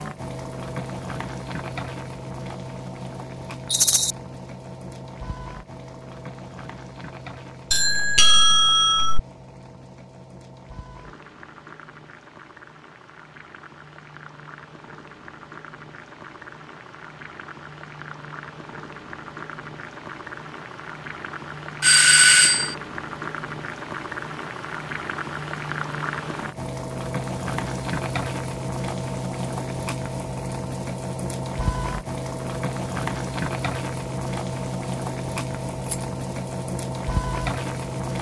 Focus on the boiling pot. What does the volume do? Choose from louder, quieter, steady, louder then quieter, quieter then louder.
quieter then louder.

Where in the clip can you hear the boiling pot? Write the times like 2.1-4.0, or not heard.
0.0-38.1.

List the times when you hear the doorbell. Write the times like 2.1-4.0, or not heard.
7.7-9.2, 21.8-22.8.